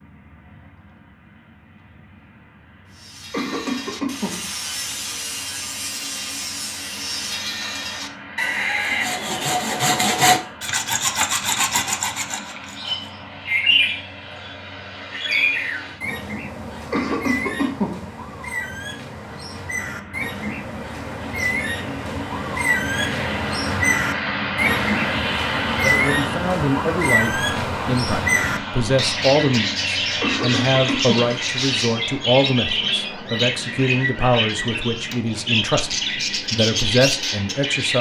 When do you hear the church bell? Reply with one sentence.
You can't hear the church bell here.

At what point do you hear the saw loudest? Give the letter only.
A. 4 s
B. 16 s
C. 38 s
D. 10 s
D.